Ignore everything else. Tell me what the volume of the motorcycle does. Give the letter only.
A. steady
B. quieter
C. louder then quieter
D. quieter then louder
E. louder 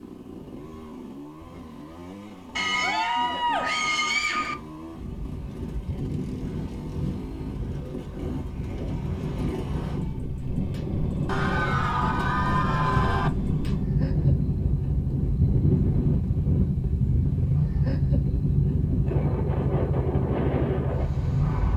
E.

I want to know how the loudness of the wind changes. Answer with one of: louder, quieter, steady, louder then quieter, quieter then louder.
louder.